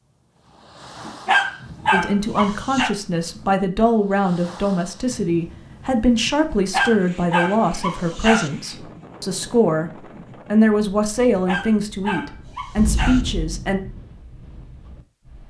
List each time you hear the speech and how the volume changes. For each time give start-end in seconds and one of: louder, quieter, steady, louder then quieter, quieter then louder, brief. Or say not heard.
1.9-13.8 steady.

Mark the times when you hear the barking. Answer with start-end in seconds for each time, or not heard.
1.1-2.9, 6.5-8.5, 11.2-13.2.